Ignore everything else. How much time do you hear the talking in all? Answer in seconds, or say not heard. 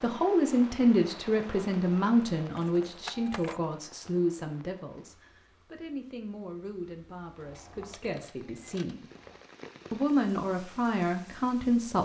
11 s.